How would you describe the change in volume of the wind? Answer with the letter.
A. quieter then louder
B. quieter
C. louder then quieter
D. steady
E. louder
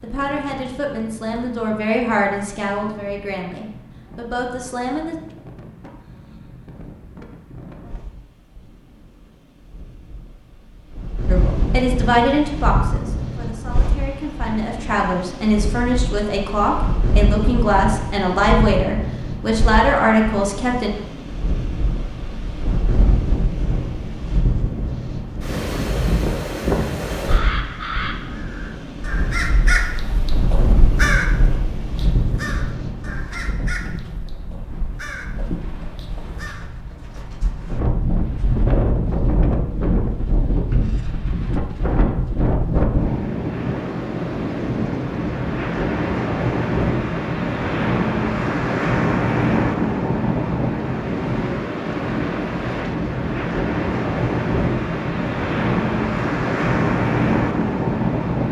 E.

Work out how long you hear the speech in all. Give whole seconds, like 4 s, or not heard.
15 s.